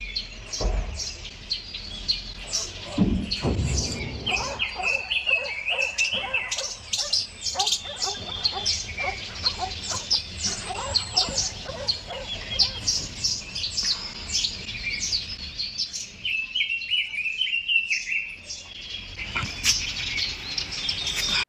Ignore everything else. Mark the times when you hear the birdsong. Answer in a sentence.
You can hear the birdsong from 0.0 to 21.4 s.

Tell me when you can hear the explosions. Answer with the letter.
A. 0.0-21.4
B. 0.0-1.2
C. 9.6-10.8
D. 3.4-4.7
D.